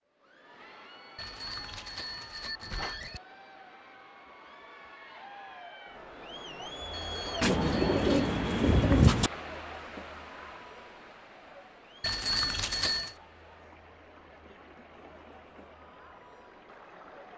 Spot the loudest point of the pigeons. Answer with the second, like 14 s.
9 s.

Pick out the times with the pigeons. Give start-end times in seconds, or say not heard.
7.4-9.3.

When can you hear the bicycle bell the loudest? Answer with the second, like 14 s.
12 s.